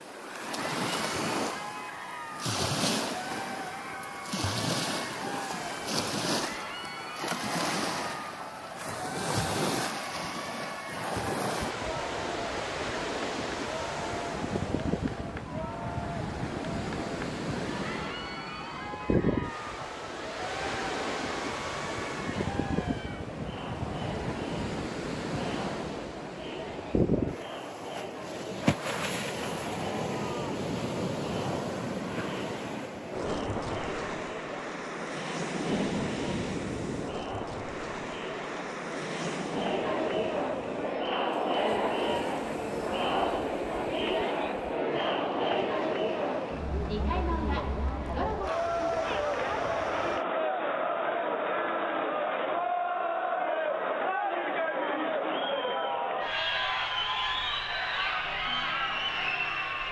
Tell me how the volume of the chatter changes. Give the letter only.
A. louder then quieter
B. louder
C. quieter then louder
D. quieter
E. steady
B.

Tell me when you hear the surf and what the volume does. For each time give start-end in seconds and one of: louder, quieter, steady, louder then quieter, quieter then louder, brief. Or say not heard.
0.0-50.2 quieter.